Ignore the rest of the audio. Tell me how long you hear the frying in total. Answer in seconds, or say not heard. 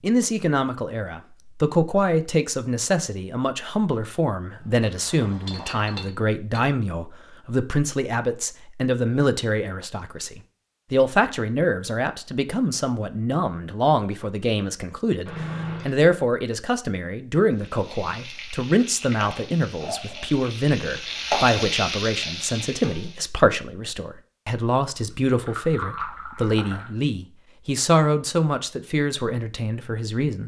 6 s.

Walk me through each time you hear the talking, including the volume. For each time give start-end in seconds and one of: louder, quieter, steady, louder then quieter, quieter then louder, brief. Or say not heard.
0.0-30.4 steady.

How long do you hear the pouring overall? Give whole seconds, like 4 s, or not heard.
4 s.